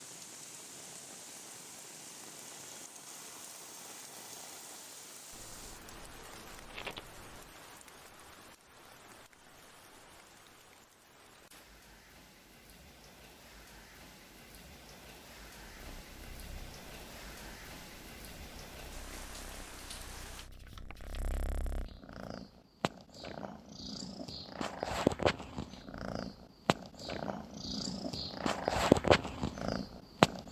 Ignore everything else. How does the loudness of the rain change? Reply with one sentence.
The volume of the rain goes down, then up.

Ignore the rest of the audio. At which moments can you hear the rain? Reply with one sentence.
You can hear the rain from 0.0 to 20.5 s.